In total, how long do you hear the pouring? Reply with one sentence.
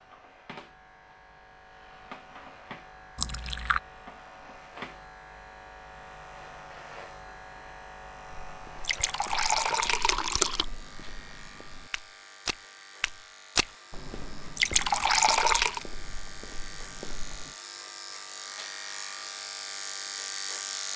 You can hear the pouring for 4 seconds altogether.